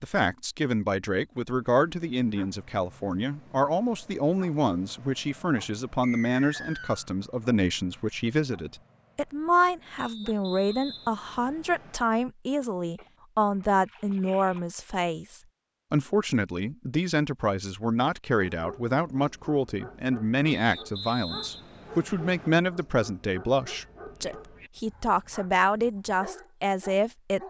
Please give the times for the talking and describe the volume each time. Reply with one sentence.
The talking can be heard from 0.0 to 27.4 s, at a steady volume.